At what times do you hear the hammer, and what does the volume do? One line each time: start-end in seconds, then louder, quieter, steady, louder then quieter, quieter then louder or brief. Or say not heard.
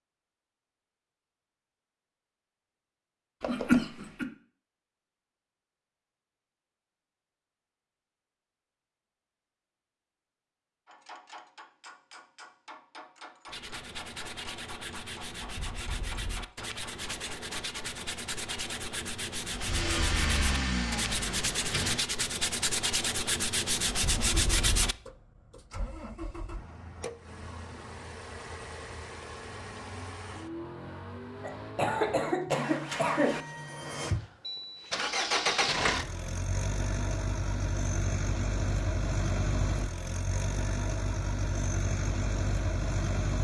10.8-18.0 steady.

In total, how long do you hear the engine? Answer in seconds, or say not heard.
22 s.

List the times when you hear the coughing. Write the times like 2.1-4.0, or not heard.
3.4-4.2, 31.4-33.4.